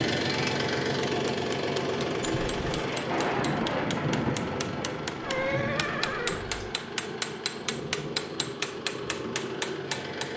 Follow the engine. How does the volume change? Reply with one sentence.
The loudness of the engine goes down.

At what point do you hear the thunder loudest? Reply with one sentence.
The volume of the thunder peaks at 3 seconds.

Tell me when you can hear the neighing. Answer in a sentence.
You can hear the neighing from 2.2 to 2.9 s and from 5.2 to 6.7 s.